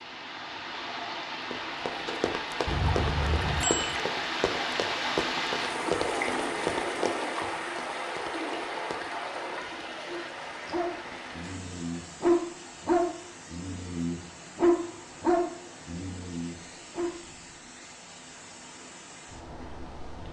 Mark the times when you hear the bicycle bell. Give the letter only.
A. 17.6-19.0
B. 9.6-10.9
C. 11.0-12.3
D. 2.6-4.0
D.